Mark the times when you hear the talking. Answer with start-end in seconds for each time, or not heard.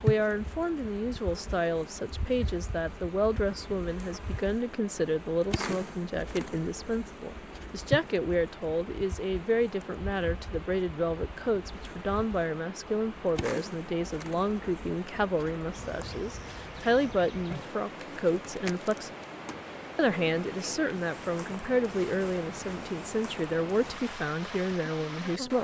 0.0-19.1, 19.9-25.5.